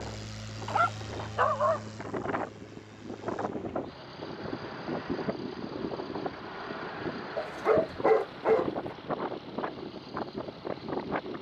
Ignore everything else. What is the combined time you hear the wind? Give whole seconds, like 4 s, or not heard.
11 s.